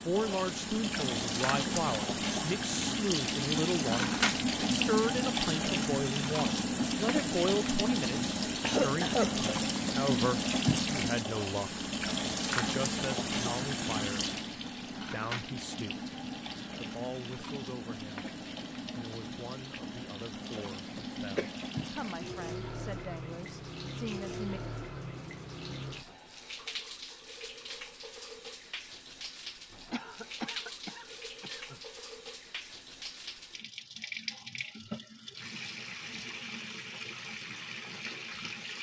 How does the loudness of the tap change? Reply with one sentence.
The volume of the tap goes down.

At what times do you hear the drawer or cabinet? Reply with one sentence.
You can't hear the drawer or cabinet here.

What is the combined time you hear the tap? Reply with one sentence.
You can hear the tap for 39 seconds altogether.